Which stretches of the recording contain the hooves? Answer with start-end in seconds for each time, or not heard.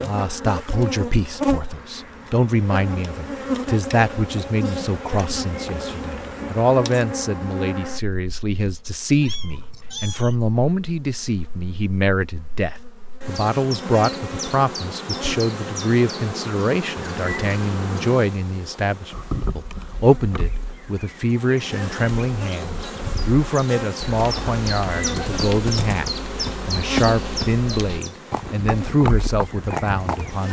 24.0-30.4.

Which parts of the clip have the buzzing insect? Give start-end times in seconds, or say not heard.
0.0-30.4.